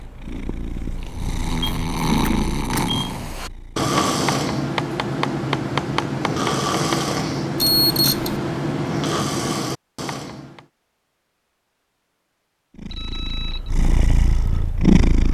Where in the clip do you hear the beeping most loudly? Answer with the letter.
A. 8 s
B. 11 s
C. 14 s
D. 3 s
A.